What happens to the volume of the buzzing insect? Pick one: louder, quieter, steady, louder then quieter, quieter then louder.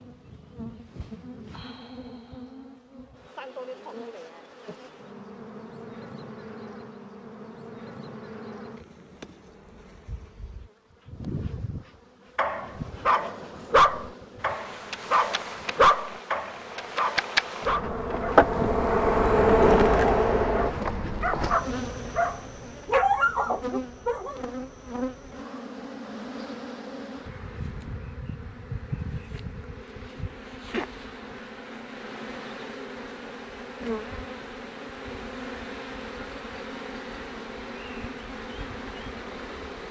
louder then quieter.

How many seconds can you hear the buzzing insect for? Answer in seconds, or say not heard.
40 s.